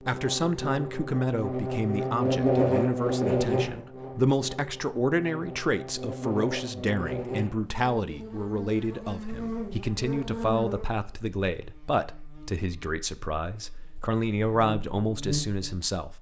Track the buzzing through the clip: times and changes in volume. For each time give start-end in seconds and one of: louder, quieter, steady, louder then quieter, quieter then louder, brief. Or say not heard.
0.0-16.0 quieter.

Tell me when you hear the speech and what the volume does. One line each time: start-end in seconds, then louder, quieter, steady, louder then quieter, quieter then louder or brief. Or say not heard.
0.1-16.1 steady.